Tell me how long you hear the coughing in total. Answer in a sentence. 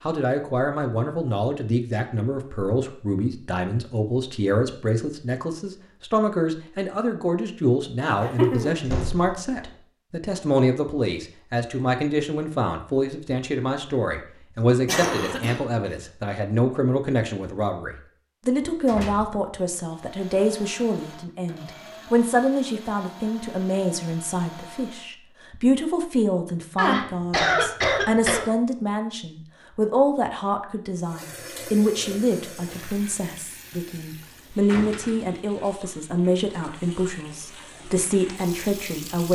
The coughing can be heard for 3 seconds in total.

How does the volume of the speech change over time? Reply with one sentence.
The loudness of the speech stays about the same.